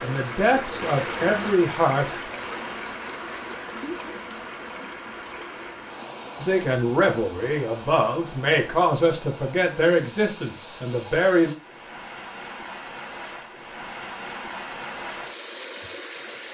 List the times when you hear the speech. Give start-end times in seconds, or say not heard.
0.0-2.2, 6.3-11.6.